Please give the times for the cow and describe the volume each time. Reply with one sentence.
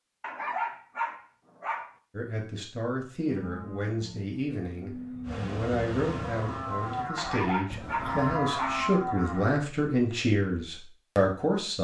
You can hear the cow from 3.2 to 9.6 s, getting louder.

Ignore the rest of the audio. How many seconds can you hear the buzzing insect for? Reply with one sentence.
You can hear the buzzing insect for 2 seconds altogether.